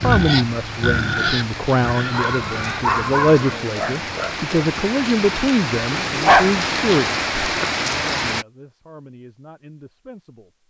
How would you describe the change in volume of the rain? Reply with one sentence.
The volume of the rain goes up.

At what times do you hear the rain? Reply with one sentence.
You can hear the rain from 0.0 to 8.4 s.